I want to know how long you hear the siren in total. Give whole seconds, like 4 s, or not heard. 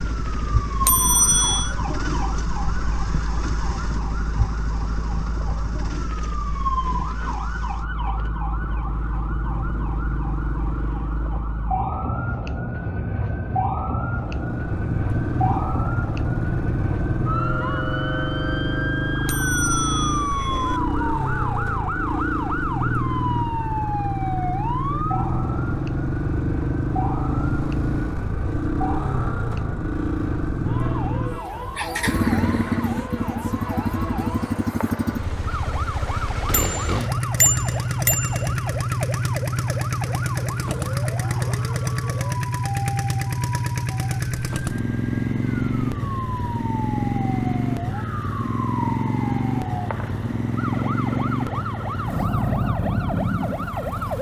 54 s.